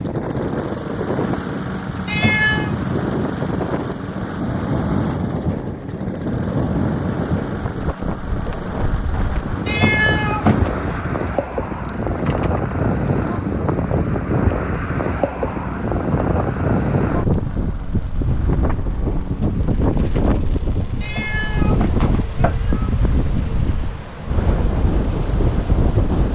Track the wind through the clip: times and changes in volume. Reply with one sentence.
You can hear the wind from 0.0 to 26.3 s, at a steady volume.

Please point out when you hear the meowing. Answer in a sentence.
The meowing can be heard from 2.0 to 2.8 s, from 9.7 to 10.7 s and from 21.0 to 22.9 s.